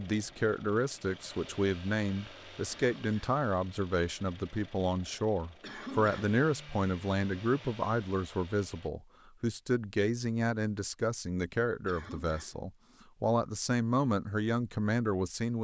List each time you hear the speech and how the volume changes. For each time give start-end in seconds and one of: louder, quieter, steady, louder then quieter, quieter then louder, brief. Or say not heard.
0.0-15.5 steady.